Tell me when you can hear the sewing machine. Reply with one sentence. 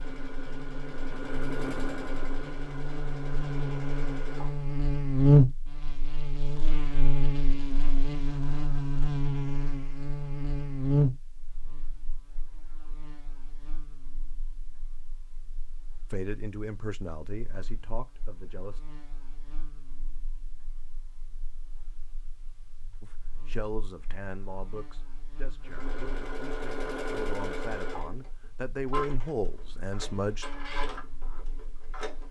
You can hear the sewing machine from 0.0 to 4.8 s and from 25.6 to 32.2 s.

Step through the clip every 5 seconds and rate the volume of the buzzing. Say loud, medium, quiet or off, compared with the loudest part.
medium, loud, medium, quiet, quiet, quiet, quiet.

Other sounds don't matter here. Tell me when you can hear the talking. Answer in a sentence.
The talking can be heard from 16.1 to 18.8 s and from 23.0 to 30.4 s.